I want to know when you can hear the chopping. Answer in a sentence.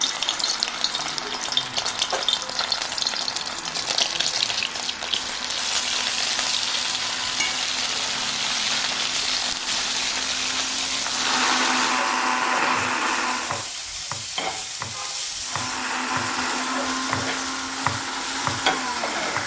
The chopping can be heard from 12.8 to 16.4 s and from 17.1 to 18.6 s.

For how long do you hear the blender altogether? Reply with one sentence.
The blender can be heard for 18 seconds in total.